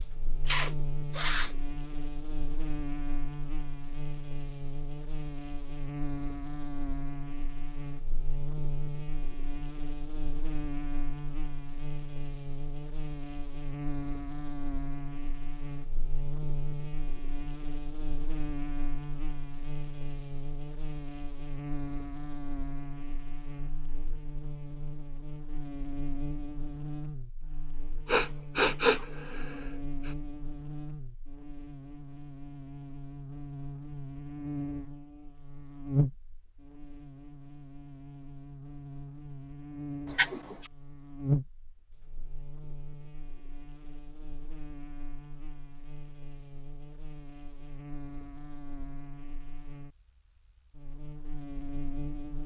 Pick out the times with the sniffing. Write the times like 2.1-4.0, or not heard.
0.5-1.5, 28.1-30.1, 40.0-40.7.